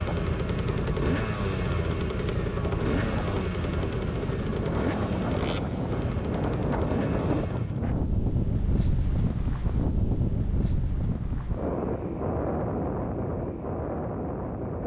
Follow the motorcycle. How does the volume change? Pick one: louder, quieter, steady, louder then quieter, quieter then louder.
quieter.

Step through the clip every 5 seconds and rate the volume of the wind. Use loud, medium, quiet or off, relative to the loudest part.
medium, loud, loud.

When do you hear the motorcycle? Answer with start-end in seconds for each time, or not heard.
0.0-8.0.